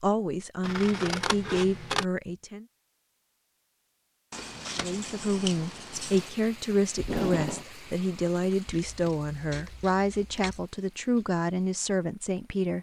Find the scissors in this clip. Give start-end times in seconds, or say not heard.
0.6-2.0, 4.3-6.3, 8.7-10.7.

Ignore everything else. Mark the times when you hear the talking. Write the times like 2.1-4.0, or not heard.
0.0-2.6, 4.8-12.7.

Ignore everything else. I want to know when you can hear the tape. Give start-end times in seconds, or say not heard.
7.0-7.7.